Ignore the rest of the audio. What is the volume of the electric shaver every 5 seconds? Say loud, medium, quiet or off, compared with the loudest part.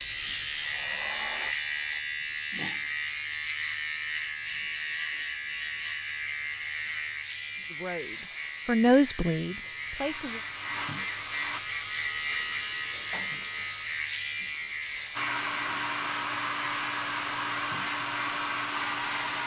loud, loud, loud, medium.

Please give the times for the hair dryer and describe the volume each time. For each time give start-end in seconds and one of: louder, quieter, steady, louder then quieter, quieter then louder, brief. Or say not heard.
0.0-2.0 brief
9.9-11.6 brief
15.2-19.4 steady.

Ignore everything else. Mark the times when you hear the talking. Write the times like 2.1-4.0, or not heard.
7.7-10.4.